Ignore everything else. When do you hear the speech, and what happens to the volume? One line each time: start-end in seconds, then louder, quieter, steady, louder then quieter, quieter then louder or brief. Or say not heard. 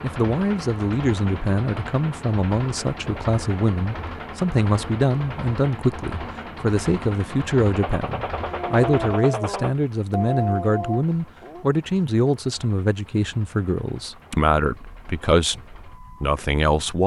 0.0-17.0 steady.